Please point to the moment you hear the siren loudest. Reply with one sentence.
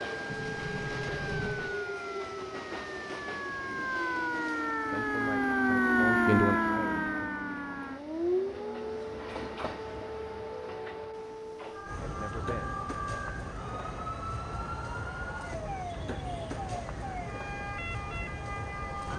The volume of the siren peaks at 6 seconds.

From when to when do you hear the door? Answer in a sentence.
The door can be heard from 0.2 to 1.8 s.